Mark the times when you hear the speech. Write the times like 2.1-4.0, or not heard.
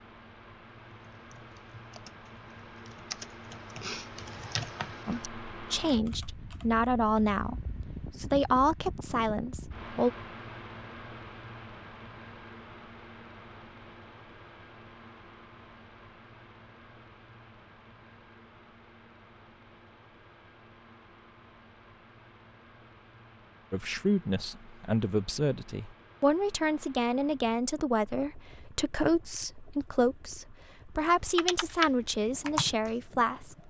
5.0-10.1, 23.7-33.6.